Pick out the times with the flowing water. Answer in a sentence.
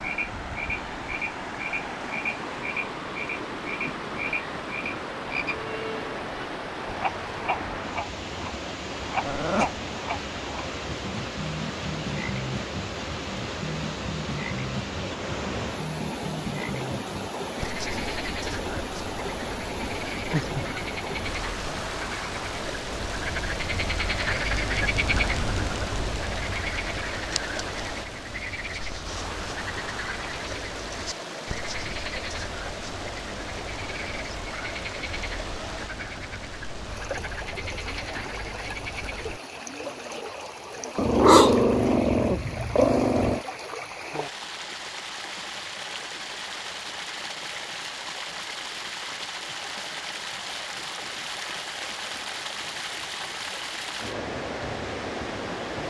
You can hear the flowing water from 0.0 to 55.8 s.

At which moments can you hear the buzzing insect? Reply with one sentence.
You can't hear the buzzing insect here.